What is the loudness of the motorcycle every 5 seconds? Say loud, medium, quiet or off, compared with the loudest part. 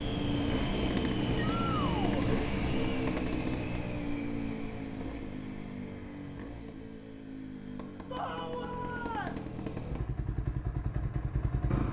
loud, medium, loud.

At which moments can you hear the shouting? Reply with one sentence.
The shouting can be heard from 1.4 to 2.3 s and from 8.1 to 9.4 s.